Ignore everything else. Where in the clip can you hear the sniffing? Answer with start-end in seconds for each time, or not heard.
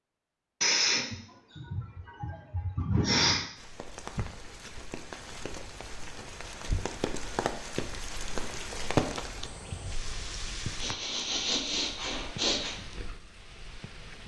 0.6-3.4, 10.8-12.8.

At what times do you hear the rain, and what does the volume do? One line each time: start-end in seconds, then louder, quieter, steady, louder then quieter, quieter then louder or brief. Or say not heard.
3.5-14.2 louder then quieter.